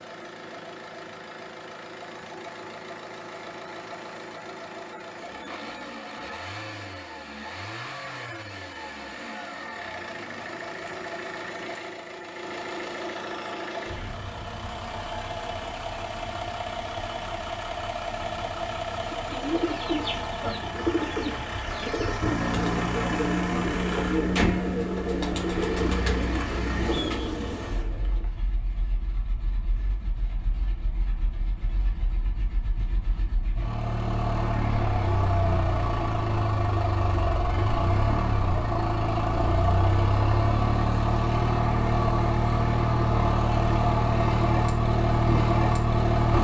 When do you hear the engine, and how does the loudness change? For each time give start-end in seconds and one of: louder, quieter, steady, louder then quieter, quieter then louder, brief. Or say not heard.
0.0-46.3 louder.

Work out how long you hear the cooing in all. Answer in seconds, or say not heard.
9 s.